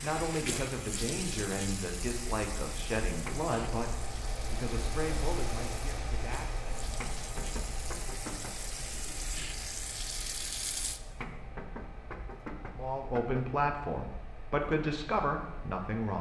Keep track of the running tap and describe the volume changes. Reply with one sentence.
The volume of the running tap goes down, then up.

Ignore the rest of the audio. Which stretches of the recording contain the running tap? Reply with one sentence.
The running tap can be heard from 0.0 to 11.0 s.